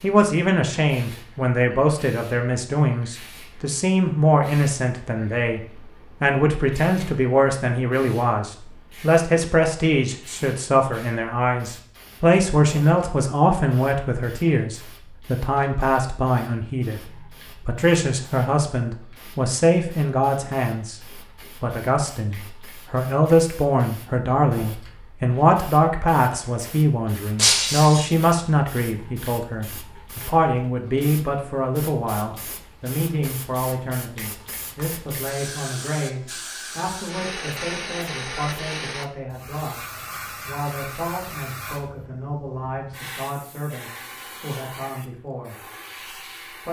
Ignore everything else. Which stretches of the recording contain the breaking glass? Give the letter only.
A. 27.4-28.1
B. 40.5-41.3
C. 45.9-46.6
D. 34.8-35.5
A.